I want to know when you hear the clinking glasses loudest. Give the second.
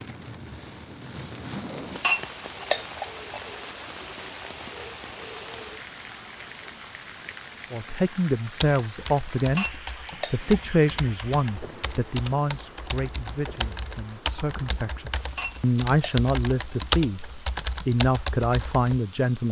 2 s.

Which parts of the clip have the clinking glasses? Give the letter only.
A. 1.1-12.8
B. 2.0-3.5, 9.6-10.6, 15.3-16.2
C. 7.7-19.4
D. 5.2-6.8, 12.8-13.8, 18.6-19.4
B.